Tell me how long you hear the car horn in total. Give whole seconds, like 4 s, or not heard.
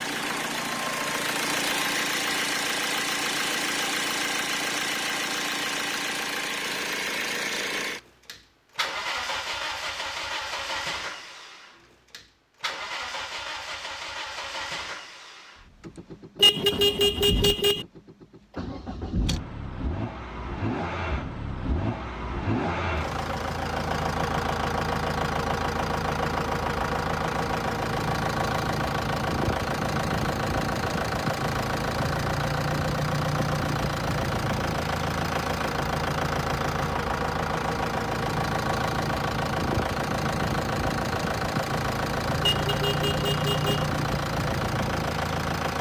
3 s.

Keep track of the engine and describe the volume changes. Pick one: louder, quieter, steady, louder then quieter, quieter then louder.
quieter then louder.